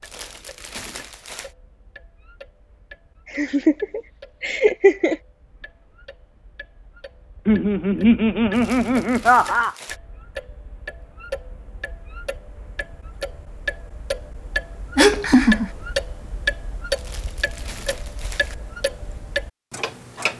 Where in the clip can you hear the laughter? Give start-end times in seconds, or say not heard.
3.3-5.2, 7.5-9.8, 14.9-15.7.